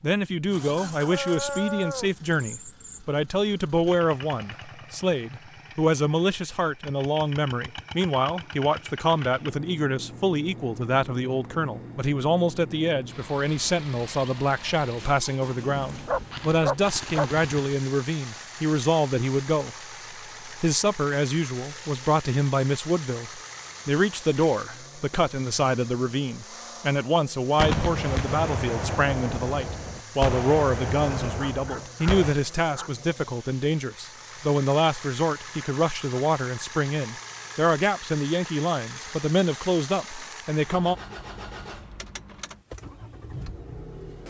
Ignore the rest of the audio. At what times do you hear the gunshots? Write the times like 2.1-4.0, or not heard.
16.1-17.8, 27.6-32.4.